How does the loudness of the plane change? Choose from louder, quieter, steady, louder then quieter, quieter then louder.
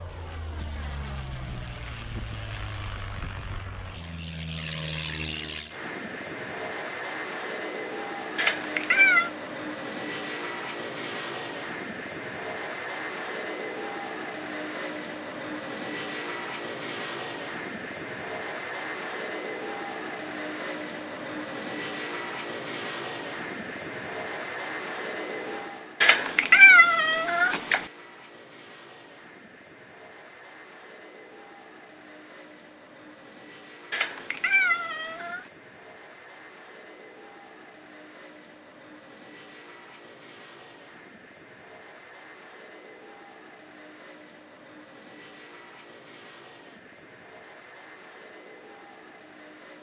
quieter.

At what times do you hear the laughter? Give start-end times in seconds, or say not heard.
not heard.